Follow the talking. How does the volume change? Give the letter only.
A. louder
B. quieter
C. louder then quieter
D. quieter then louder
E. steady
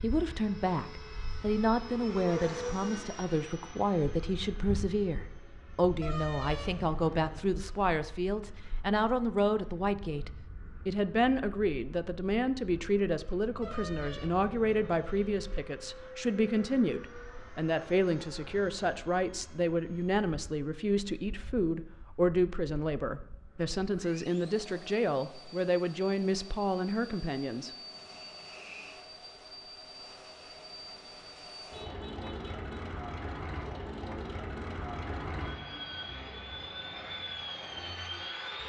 E.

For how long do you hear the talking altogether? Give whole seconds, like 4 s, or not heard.
28 s.